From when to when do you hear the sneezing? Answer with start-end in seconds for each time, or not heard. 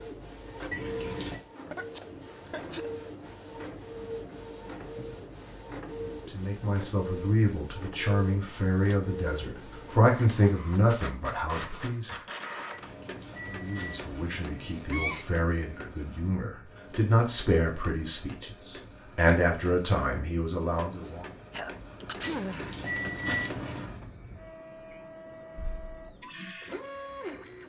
1.7-2.9, 14.7-15.3, 21.1-22.8.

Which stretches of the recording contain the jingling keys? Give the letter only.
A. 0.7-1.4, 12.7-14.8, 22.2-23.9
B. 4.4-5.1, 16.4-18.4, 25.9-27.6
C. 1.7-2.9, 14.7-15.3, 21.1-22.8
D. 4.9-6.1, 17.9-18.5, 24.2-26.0
A.